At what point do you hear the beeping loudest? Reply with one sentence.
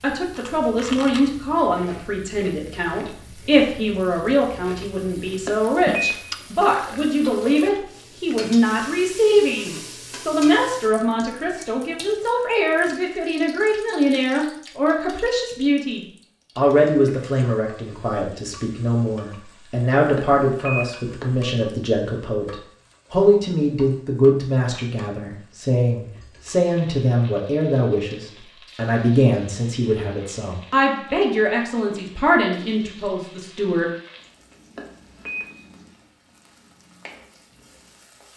The loudest moment of the beeping is at 6 seconds.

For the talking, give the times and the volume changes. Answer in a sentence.
The talking can be heard from 0.0 to 33.9 s, at a steady volume.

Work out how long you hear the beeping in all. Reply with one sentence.
The beeping can be heard for 3 seconds in total.